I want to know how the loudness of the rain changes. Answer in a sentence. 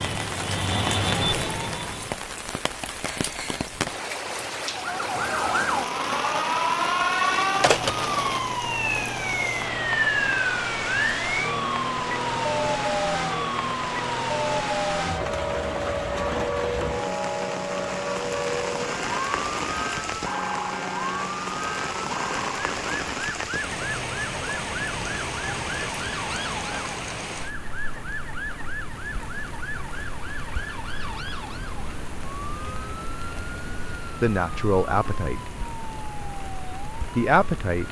The volume of the rain goes down.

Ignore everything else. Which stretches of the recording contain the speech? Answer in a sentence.
The speech can be heard from 34.2 to 35.4 s and from 37.1 to 37.8 s.